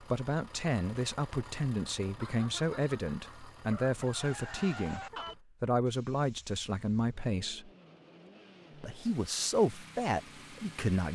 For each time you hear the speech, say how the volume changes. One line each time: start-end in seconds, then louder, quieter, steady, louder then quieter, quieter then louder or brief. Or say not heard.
0.1-7.7 steady
8.8-11.1 brief.